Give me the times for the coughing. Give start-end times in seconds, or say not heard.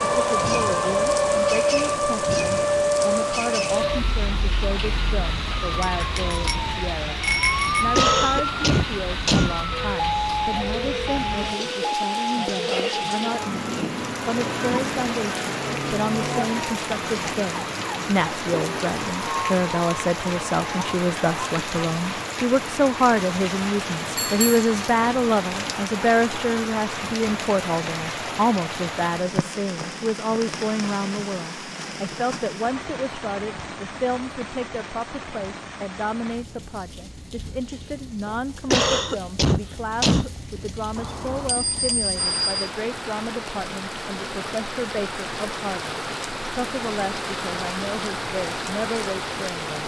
7.5-9.6, 38.2-40.7.